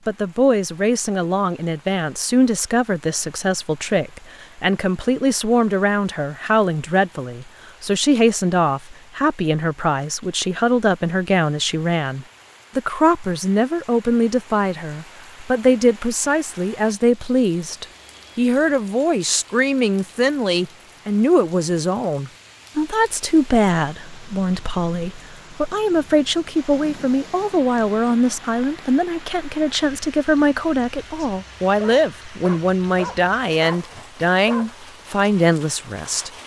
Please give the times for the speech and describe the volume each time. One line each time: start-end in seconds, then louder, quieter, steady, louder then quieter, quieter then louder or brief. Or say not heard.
0.1-36.3 steady.